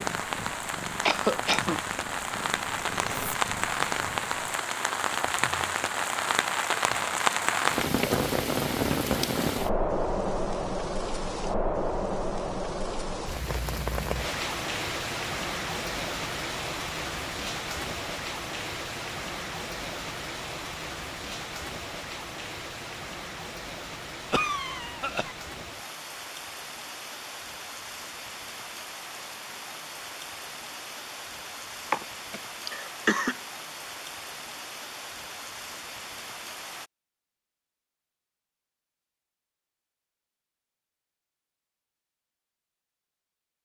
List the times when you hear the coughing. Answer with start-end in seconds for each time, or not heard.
1.0-1.8, 24.3-25.4, 31.9-33.4.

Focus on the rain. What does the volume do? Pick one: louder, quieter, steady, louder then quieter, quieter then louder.
quieter.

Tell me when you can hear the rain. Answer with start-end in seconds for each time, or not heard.
0.0-36.9.